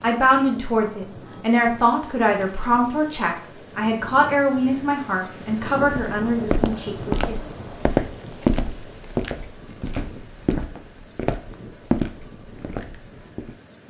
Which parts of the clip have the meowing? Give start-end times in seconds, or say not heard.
not heard.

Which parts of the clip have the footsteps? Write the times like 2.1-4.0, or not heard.
5.8-13.6.